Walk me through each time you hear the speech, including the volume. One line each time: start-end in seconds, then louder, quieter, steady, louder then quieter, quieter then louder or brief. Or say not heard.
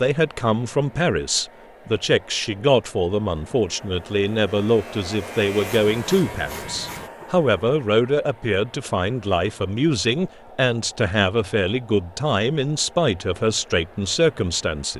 0.0-14.9 steady.